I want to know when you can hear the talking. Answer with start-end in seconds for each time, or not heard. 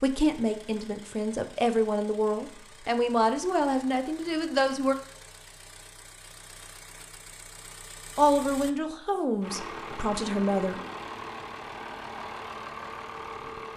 0.0-5.0, 8.2-10.8.